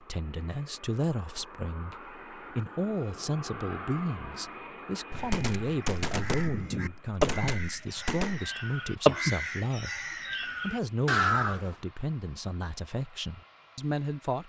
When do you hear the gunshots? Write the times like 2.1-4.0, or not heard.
5.1-8.4.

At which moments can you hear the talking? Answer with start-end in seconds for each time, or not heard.
0.0-14.4.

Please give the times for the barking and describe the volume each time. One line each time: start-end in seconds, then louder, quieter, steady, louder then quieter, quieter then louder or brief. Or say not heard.
not heard.